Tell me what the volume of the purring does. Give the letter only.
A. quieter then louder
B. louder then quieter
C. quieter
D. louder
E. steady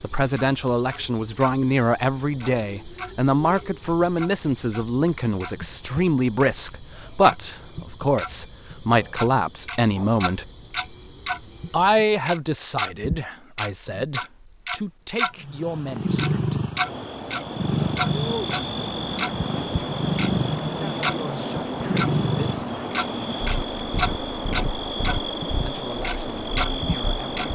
C.